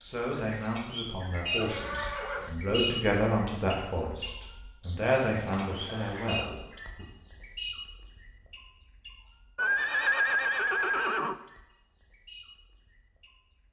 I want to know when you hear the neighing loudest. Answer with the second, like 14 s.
10 s.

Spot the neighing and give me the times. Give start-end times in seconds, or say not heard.
1.4-2.5, 5.6-6.4, 9.6-11.3.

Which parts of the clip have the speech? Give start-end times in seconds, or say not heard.
0.0-7.0.